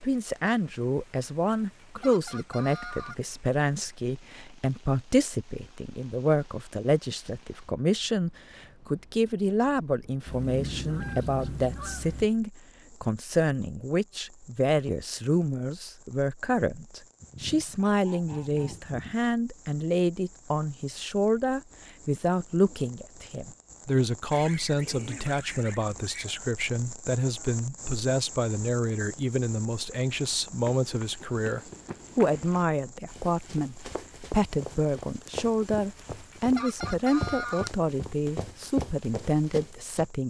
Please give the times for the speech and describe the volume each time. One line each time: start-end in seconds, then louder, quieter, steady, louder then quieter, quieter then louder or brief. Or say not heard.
0.0-40.2 steady.